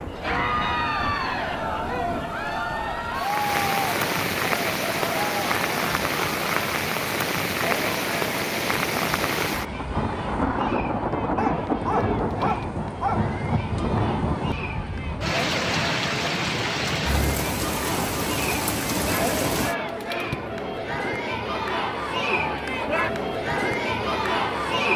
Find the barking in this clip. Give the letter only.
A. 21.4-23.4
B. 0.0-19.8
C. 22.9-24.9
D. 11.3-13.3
D.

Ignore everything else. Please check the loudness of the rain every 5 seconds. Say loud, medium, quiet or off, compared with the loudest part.
loud, loud, loud, loud, off.